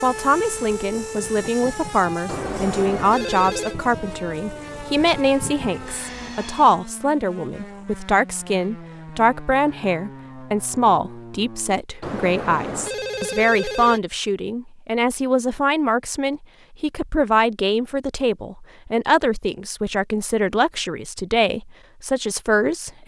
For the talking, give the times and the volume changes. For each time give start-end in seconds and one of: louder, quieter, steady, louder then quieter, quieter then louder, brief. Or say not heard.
0.0-23.0 steady.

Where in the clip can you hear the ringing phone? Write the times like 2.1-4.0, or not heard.
2.2-3.8, 12.0-14.0.